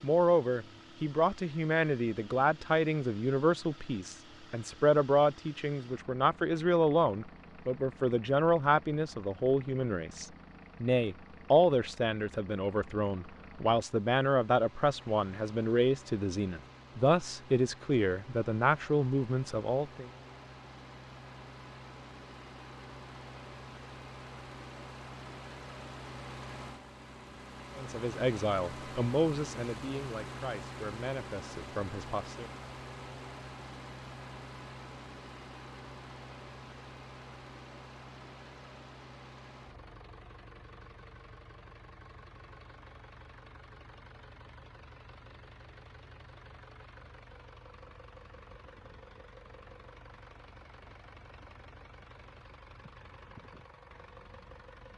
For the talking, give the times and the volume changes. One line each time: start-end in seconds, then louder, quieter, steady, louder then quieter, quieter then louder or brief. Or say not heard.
0.0-20.1 steady
27.8-32.5 quieter.